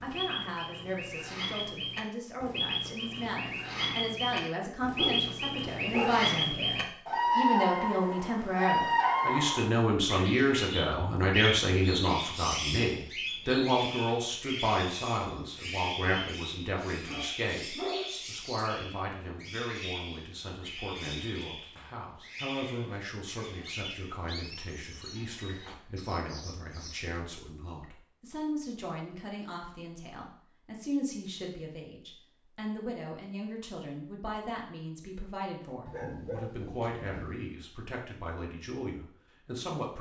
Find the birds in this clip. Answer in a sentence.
The birds can be heard from 0.0 to 27.1 s.